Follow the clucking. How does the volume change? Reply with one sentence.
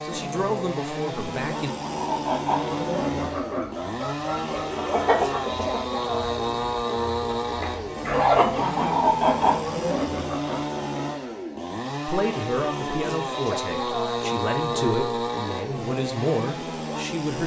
The volume of the clucking goes down, then up.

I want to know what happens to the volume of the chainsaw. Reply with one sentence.
The loudness of the chainsaw stays about the same.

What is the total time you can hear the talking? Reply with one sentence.
The talking can be heard for 7 seconds in total.